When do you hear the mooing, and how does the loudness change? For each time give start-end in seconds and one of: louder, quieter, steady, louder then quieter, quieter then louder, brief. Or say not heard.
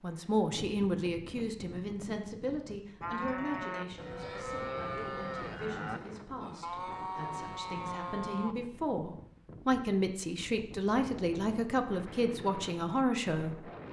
3.0-8.6 steady.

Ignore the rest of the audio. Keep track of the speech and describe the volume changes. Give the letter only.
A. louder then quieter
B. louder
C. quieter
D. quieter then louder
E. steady
D.